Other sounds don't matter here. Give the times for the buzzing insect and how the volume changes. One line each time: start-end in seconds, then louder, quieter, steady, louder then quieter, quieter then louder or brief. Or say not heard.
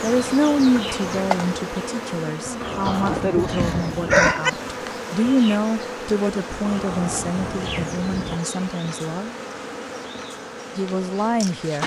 0.0-11.8 quieter.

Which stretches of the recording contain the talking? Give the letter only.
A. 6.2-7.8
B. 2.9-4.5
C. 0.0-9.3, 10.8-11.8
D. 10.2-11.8
C.